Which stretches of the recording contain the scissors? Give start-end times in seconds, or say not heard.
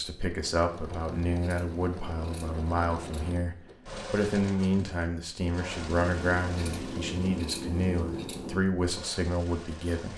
0.7-3.4, 6.0-8.7.